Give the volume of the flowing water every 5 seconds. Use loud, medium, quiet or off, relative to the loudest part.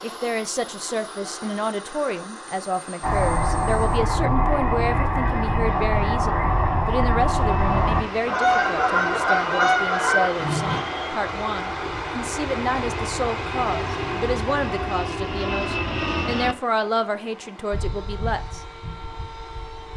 off, loud, loud, quiet.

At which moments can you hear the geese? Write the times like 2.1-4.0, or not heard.
3.0-10.8.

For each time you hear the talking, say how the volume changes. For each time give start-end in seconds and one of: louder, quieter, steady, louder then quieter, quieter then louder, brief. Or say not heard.
0.0-18.6 steady.